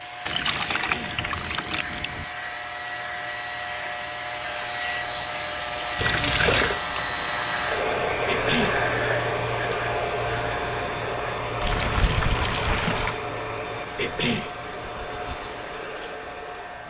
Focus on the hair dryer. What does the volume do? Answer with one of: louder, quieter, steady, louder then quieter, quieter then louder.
louder then quieter.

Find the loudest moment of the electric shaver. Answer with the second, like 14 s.
9 s.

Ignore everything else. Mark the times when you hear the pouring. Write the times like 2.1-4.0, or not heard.
0.2-2.2, 6.0-6.8, 11.6-13.2.